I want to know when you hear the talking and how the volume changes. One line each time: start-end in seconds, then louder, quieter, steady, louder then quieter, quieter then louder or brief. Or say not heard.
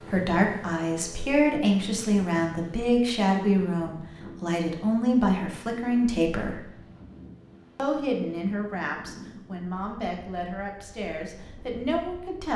0.0-6.7 steady
7.8-12.5 quieter then louder.